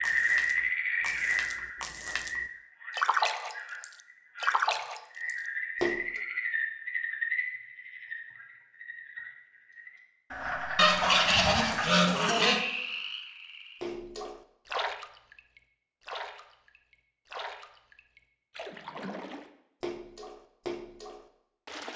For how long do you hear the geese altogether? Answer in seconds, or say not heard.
2 s.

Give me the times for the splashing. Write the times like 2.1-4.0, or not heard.
0.0-6.2, 13.8-21.9.